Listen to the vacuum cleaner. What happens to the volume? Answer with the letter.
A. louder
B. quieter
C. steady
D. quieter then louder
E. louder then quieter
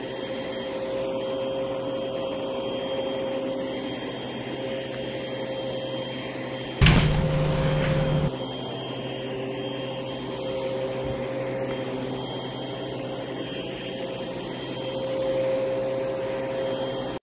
C.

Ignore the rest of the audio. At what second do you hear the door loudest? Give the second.
7 s.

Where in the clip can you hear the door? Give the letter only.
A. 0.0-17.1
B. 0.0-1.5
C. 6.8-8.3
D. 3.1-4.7
C.